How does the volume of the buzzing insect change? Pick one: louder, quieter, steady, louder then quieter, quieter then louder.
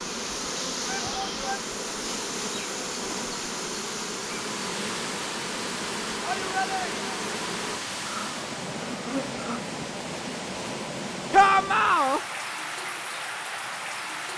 steady.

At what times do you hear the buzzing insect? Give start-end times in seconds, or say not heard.
0.0-9.6.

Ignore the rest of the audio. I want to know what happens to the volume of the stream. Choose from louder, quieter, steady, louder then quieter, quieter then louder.
steady.